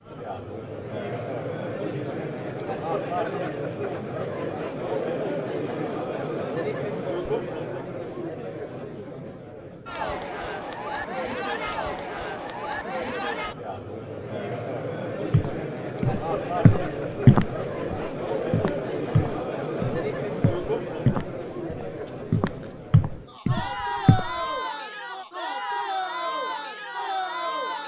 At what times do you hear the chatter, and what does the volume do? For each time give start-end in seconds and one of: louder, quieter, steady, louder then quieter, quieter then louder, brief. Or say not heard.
0.0-27.8 steady.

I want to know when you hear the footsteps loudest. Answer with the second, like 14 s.
17 s.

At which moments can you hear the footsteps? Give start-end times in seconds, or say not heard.
15.3-24.3.